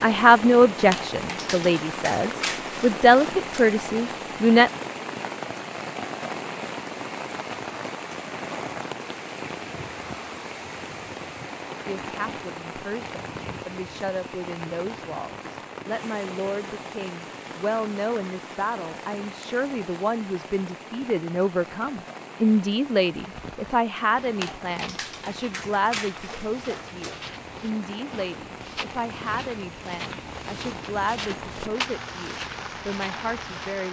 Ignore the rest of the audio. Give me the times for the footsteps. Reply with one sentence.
The footsteps can be heard from 23.2 to 33.8 s.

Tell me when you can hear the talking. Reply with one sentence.
The talking can be heard from 0.0 to 4.7 s and from 11.8 to 33.8 s.